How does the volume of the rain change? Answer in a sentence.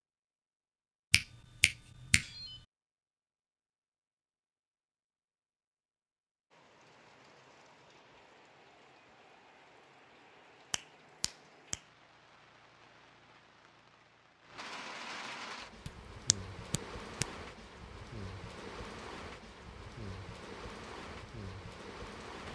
The volume of the rain goes up.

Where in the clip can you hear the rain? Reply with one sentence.
The rain can be heard from 6.5 to 22.4 s.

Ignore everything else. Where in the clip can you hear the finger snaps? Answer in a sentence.
You can hear the finger snaps from 1.1 to 2.6 s, from 10.7 to 11.8 s and from 15.8 to 17.2 s.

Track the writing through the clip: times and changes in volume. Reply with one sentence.
The writing can't be heard in this clip.